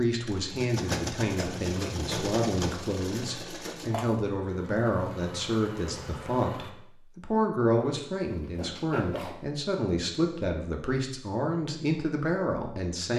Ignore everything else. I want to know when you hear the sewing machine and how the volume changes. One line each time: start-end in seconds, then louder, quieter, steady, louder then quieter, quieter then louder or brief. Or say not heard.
0.1-6.8 quieter.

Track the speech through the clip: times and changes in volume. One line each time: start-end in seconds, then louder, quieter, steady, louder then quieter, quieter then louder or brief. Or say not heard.
0.0-13.1 steady.